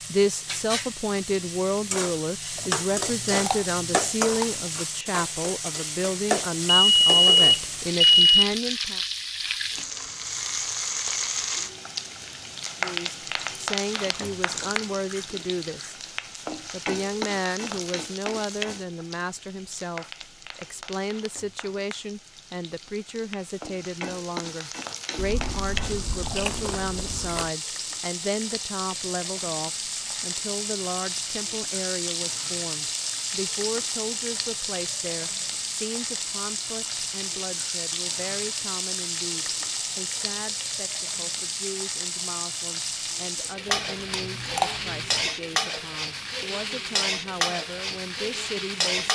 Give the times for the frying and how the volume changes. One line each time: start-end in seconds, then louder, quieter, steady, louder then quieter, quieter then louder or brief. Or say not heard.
0.0-49.1 quieter then louder.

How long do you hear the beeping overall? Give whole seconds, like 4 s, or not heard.
2 s.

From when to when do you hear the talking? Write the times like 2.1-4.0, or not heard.
0.1-9.0, 12.8-16.0, 16.7-49.1.